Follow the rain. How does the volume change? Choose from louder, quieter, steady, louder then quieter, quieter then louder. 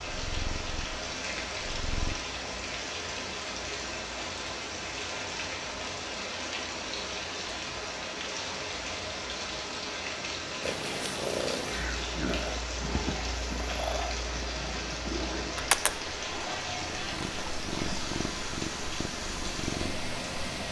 steady.